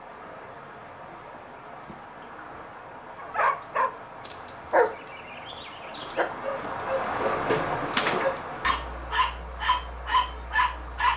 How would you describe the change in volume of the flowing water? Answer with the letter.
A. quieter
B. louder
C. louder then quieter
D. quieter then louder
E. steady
C.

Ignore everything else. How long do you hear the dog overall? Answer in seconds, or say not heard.
8 s.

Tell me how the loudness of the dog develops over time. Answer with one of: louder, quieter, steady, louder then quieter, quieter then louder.
quieter then louder.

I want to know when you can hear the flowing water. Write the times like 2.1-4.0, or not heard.
0.0-11.1.